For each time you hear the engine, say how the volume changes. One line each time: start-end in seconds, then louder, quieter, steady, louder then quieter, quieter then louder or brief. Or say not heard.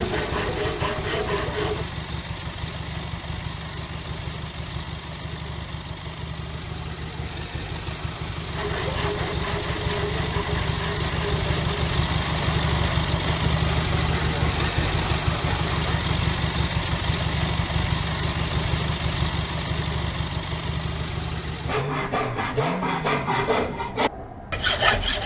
0.0-25.2 louder then quieter.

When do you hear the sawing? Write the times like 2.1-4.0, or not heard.
0.0-1.9, 8.5-16.0, 21.6-25.2.